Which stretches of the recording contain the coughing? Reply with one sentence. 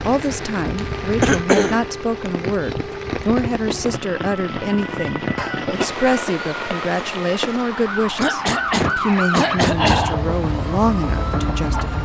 The coughing can be heard from 0.8 to 2.3 s, from 5.3 to 6.3 s and from 8.2 to 10.1 s.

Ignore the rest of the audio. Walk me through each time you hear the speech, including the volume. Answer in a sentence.
You can hear the speech from 0.0 to 12.0 s, at a steady volume.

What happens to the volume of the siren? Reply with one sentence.
The volume of the siren goes up.